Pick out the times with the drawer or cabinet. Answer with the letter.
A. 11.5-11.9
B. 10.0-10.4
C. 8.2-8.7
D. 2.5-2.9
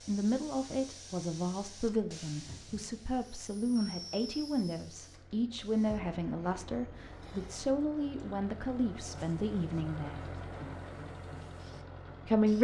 D.